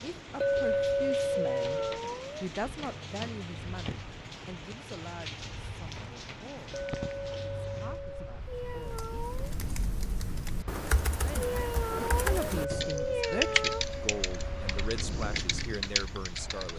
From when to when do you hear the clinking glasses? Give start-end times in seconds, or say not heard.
0.4-2.0, 6.7-8.4, 12.6-14.8.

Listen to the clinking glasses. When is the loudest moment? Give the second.
1 s.